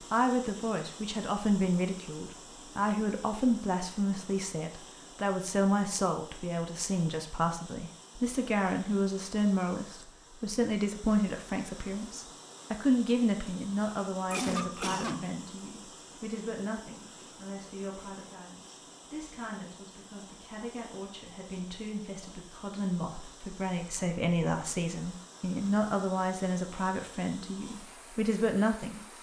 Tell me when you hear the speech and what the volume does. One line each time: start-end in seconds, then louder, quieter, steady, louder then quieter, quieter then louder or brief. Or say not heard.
0.1-29.0 quieter then louder.